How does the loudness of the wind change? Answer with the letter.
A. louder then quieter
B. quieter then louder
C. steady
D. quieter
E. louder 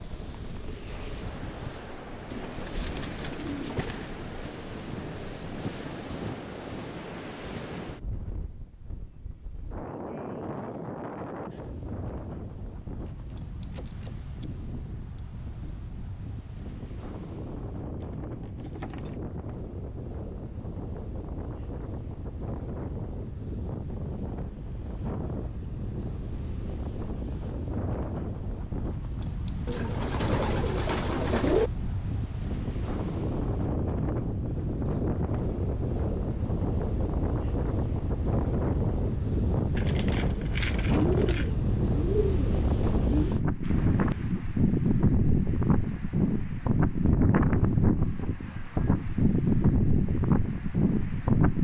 E.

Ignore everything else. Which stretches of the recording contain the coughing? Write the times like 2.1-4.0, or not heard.
not heard.